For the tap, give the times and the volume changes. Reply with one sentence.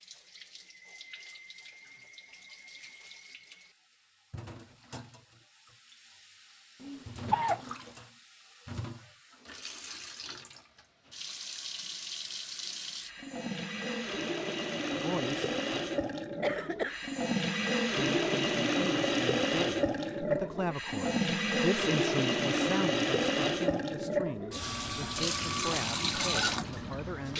You can hear the tap from 0.0 to 27.3 s, getting louder.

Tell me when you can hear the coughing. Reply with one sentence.
You can hear the coughing from 6.8 to 7.7 s and from 16.4 to 17.1 s.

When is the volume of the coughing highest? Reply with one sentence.
The volume of the coughing peaks at 7 seconds.